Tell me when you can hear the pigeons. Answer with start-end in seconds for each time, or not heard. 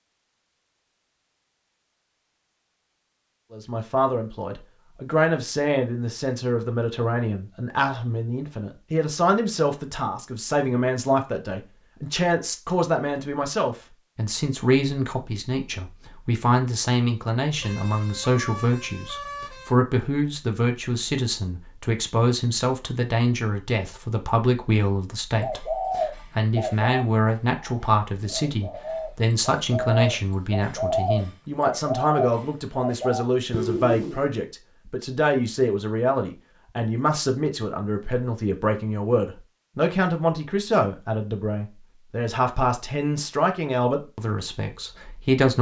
25.4-34.2.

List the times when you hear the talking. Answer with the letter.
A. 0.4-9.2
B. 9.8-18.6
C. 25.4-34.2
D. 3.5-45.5
D.